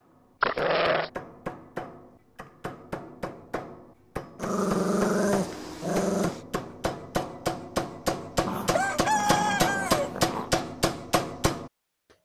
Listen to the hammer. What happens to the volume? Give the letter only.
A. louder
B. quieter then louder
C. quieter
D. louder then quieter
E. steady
A.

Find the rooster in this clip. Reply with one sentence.
You can hear the rooster from 8.7 to 10.1 s.